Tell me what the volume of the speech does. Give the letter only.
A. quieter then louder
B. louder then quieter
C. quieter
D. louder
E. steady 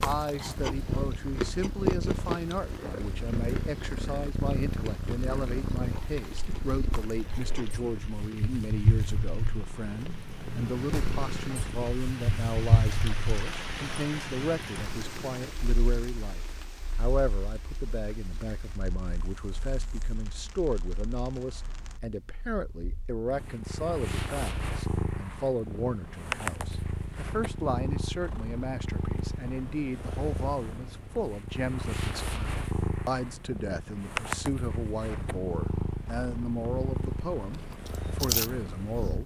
E.